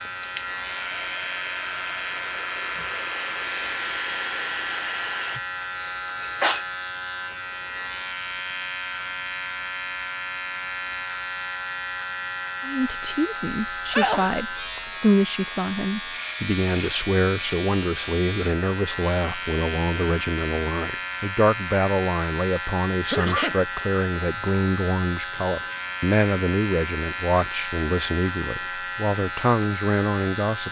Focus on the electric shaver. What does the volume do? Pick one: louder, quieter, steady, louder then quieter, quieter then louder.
steady.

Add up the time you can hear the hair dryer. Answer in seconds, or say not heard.
5 s.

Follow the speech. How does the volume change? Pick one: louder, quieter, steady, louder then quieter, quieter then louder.
steady.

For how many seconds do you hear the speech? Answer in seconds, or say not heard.
18 s.